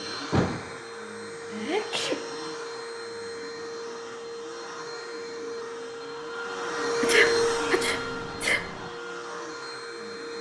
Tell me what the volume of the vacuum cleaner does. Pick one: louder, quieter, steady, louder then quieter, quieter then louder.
louder then quieter.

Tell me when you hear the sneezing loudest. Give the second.
7 s.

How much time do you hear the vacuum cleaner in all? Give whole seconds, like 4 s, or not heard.
10 s.